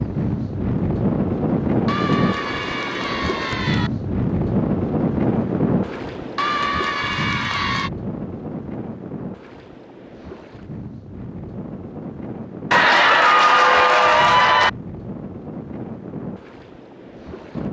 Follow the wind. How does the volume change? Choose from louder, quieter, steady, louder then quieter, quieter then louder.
quieter.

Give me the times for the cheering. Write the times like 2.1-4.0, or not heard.
1.9-3.9, 6.3-7.9, 12.7-14.7.